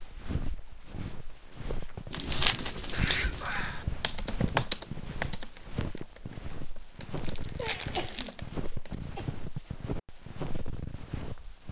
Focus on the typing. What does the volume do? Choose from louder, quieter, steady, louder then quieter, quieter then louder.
quieter then louder.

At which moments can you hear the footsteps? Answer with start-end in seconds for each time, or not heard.
0.0-11.6.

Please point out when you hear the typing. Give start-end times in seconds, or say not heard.
3.4-9.2.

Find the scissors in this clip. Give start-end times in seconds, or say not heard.
not heard.